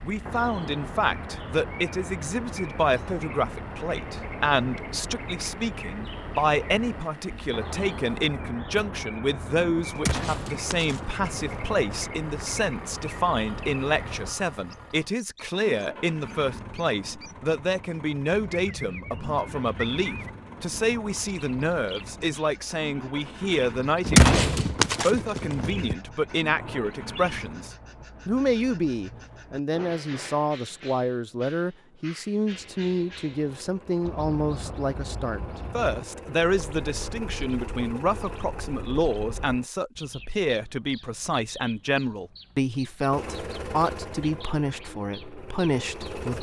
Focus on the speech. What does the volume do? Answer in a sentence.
The loudness of the speech stays about the same.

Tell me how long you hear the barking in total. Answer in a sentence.
You can't hear the barking here.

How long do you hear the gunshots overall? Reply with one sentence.
The gunshots can be heard for 4 seconds in total.